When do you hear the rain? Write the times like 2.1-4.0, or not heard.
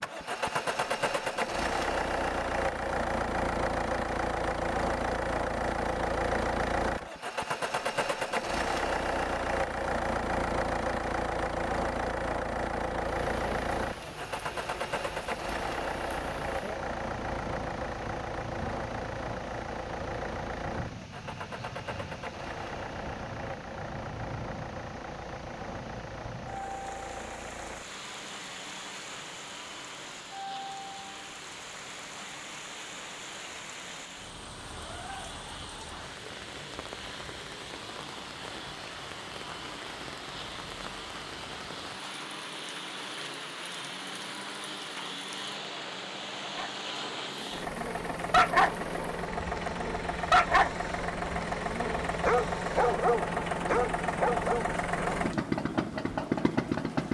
13.2-57.0.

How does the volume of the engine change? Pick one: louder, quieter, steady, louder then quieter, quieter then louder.
quieter then louder.